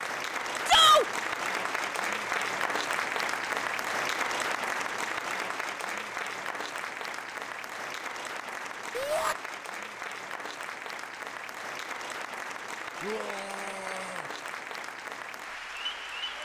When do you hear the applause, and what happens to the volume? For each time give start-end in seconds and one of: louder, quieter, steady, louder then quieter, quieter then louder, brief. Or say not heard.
0.0-16.3 quieter.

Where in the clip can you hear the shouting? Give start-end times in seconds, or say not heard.
0.7-1.1, 8.9-9.3, 13.0-14.3.